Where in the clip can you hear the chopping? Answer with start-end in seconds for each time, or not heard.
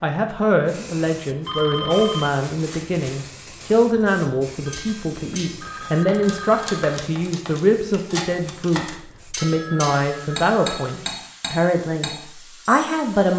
not heard.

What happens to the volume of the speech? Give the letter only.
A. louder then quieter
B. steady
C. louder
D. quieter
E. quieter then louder
B.